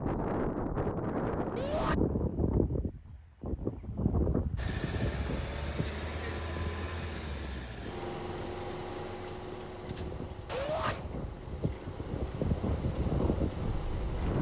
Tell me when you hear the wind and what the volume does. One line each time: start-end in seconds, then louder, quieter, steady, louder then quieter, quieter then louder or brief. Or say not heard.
0.0-14.3 quieter then louder.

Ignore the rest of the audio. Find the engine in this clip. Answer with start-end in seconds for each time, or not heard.
4.5-14.3.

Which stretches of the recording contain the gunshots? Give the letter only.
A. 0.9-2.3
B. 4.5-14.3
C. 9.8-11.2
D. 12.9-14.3
C.